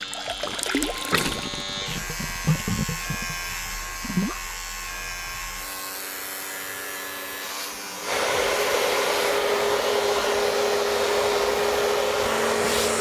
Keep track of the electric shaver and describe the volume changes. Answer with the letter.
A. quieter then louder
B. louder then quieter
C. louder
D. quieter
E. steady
E.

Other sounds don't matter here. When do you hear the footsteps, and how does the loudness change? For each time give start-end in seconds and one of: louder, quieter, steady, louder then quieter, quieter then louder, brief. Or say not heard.
not heard.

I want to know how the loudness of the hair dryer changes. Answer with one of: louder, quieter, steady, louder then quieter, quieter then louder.
louder.